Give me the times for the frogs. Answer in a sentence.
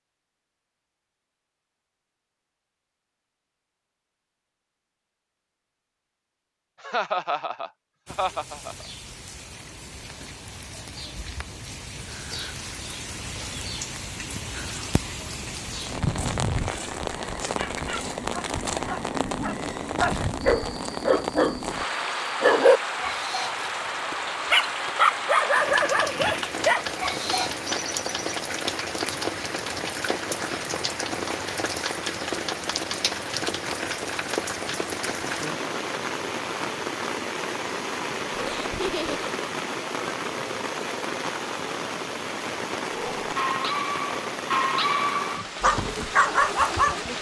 You can't hear the frogs here.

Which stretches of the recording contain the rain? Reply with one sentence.
The rain can be heard from 8.1 to 47.1 s.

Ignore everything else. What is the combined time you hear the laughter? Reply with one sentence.
You can hear the laughter for 3 seconds altogether.